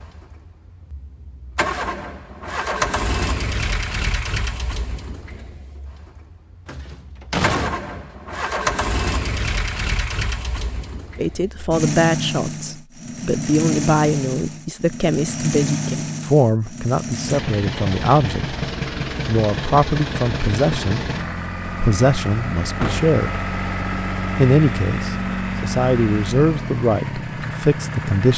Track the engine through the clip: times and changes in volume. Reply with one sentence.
You can hear the engine from 0.0 to 28.3 s, at a steady volume.